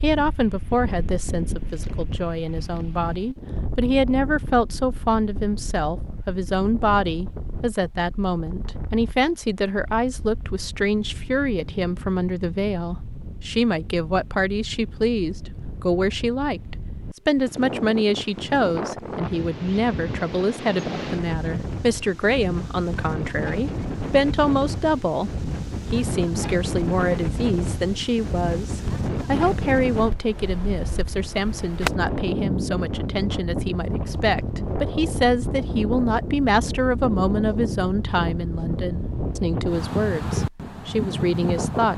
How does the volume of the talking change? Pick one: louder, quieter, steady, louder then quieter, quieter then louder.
steady.